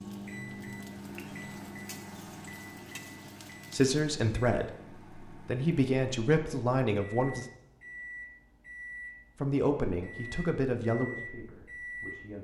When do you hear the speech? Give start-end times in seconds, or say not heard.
3.7-7.5, 9.4-12.3.